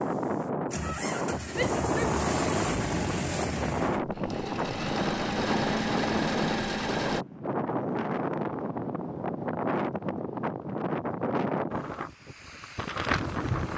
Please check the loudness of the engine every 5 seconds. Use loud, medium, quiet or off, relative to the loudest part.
loud, loud, off.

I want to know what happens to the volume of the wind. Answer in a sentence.
The loudness of the wind stays about the same.